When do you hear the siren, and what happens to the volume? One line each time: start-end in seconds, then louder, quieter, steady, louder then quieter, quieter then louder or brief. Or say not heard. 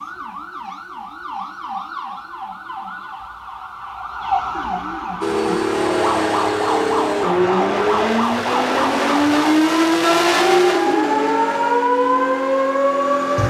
0.0-13.4 louder.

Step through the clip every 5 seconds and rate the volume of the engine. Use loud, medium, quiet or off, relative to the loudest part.
off, loud, loud.